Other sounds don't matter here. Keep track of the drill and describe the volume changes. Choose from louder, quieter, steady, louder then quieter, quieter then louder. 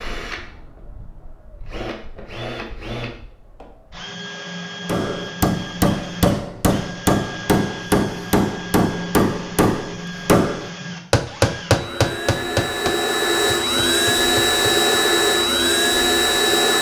louder.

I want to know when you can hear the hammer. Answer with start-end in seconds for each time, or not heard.
4.8-14.8.